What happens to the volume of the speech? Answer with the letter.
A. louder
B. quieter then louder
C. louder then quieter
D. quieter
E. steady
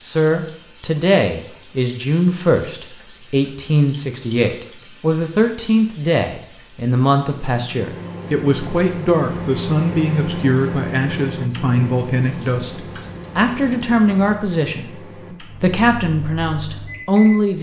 E.